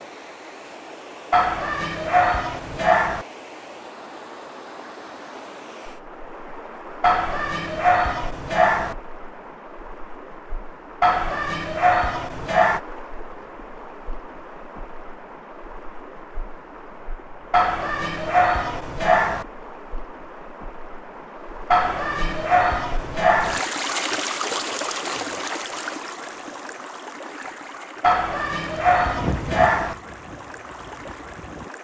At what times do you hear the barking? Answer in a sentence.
The barking can be heard from 1.3 to 3.2 s, from 7.0 to 8.9 s, from 11.0 to 12.8 s, from 17.5 to 19.4 s, from 21.7 to 23.6 s and from 28.0 to 29.9 s.